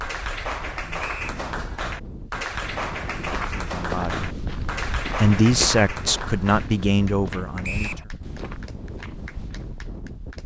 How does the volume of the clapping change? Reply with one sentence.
The volume of the clapping goes down.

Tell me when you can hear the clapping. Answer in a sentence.
You can hear the clapping from 0.0 to 10.4 s.